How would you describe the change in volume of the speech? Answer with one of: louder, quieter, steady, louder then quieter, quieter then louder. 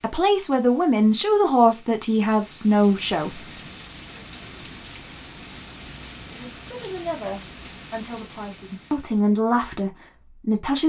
quieter then louder.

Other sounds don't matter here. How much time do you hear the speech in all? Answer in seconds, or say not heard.
8 s.